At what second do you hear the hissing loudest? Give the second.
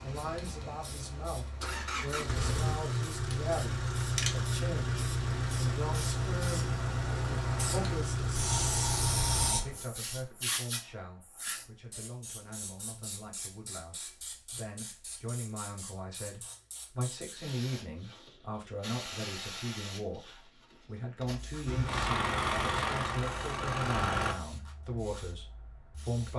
9 s.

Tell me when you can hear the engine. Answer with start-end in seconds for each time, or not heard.
0.0-9.6, 21.6-24.4.